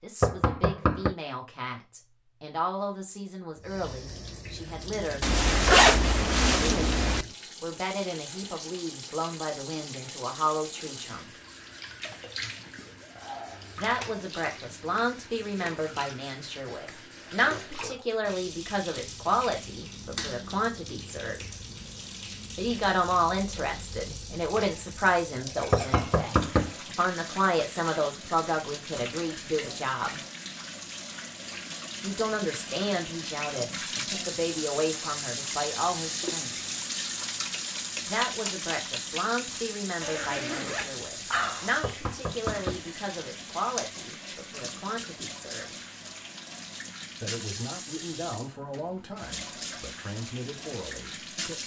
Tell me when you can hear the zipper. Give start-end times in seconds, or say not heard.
5.2-7.2, 40.0-41.9.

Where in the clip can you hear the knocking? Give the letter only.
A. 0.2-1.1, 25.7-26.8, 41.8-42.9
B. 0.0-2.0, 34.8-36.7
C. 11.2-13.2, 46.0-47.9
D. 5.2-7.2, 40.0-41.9
A.